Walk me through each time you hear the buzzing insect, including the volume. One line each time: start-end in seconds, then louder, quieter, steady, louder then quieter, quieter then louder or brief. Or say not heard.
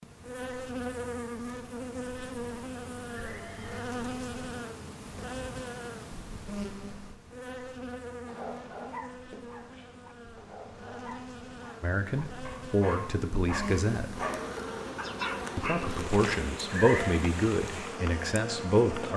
0.0-19.1 quieter then louder.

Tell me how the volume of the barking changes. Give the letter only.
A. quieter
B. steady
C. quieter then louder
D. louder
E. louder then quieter
C.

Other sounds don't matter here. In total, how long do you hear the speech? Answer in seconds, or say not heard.
6 s.